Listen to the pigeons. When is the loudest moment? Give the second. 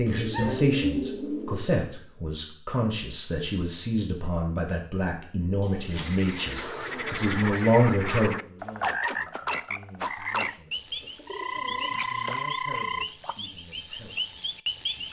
1 s.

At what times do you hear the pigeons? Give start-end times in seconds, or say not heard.
0.1-1.6, 5.6-7.7, 11.0-12.1.